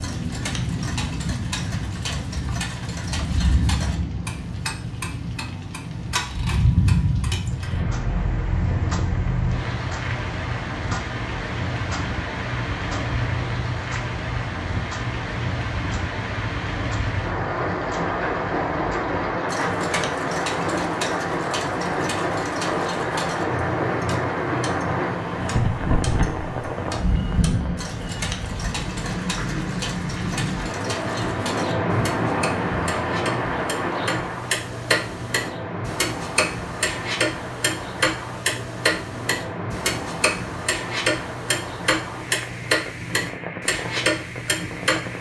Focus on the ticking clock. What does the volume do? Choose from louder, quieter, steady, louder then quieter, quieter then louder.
louder.